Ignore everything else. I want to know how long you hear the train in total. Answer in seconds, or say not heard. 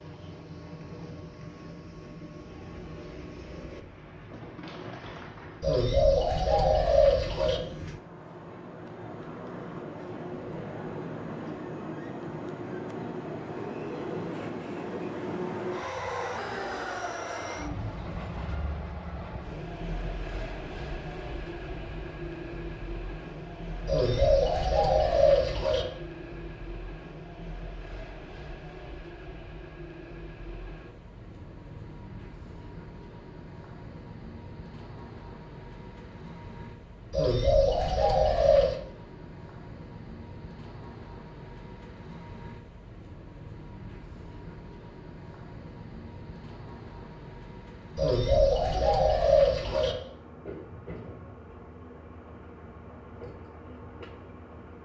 55 s.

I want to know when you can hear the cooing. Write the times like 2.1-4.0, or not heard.
5.6-7.6, 23.9-25.9, 37.1-38.8, 48.0-50.0.